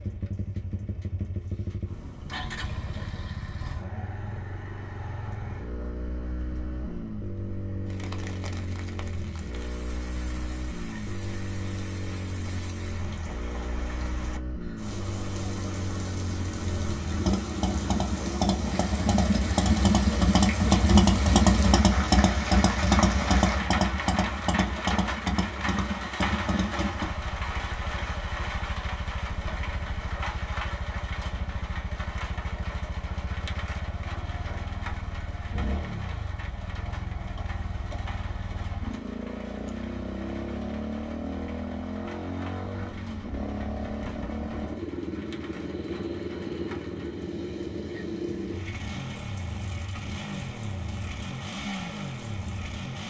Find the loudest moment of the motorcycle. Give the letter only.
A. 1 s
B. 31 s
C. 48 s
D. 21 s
D.